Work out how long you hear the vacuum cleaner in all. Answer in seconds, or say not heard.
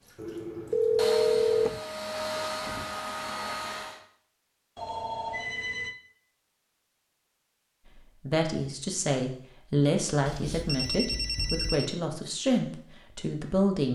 4 s.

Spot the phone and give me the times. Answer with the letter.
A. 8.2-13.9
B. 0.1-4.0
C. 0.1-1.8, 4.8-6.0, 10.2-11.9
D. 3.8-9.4
C.